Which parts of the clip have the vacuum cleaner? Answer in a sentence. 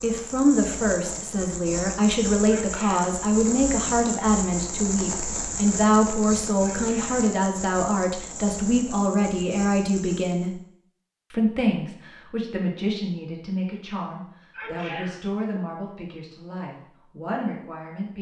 The vacuum cleaner can't be heard in this clip.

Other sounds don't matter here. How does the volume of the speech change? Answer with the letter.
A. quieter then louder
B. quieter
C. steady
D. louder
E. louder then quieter
B.